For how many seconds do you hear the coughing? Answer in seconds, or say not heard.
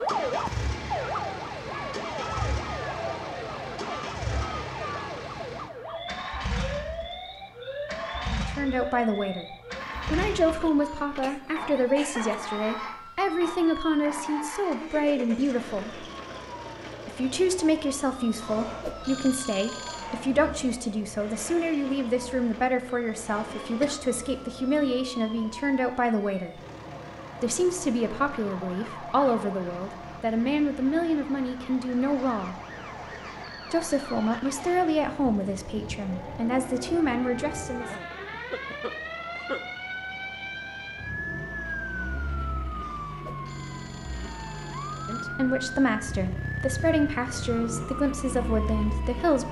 4 s.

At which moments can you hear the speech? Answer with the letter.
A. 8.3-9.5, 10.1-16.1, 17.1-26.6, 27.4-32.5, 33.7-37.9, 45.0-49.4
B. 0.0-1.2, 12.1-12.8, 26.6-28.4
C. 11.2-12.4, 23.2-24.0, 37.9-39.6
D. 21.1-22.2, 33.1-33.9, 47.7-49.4
A.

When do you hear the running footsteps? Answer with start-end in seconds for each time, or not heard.
not heard.